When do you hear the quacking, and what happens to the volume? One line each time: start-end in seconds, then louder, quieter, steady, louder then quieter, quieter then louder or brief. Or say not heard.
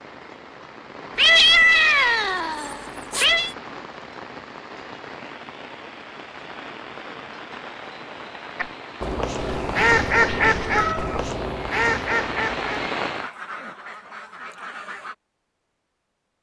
8.6-15.2 quieter.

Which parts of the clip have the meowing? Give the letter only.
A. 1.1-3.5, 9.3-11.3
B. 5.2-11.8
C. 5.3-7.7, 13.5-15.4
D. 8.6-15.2
A.